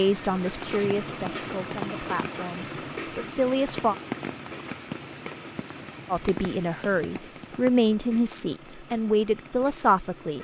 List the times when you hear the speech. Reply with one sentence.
You can hear the speech from 0.0 to 4.0 s and from 6.1 to 10.3 s.